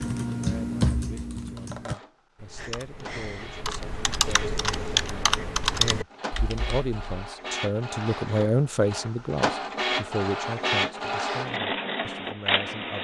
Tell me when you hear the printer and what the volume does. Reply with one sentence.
You can hear the printer from 0.0 to 12.9 s, getting louder.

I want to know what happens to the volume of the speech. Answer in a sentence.
The loudness of the speech goes up, then down.